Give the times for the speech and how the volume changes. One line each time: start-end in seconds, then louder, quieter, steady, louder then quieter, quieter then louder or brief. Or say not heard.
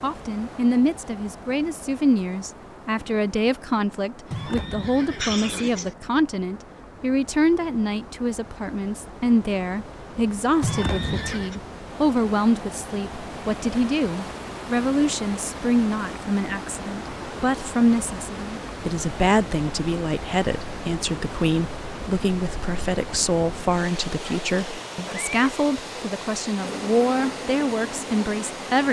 0.0-28.8 steady.